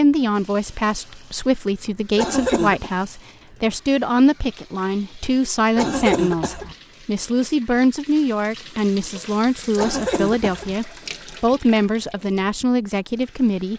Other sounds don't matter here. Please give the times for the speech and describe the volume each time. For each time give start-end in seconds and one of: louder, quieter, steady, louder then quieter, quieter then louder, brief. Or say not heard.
0.0-13.7 steady.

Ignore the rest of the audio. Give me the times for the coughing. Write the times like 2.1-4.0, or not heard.
2.1-2.9, 5.8-6.8, 9.8-10.8.